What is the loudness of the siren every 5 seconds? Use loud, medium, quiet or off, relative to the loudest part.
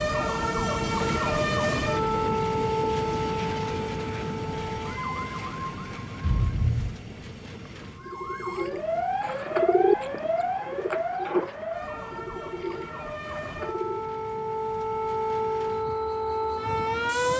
loud, medium, medium, loud.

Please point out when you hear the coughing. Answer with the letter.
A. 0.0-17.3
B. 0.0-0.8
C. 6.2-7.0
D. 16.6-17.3
C.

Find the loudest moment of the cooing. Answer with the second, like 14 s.
10 s.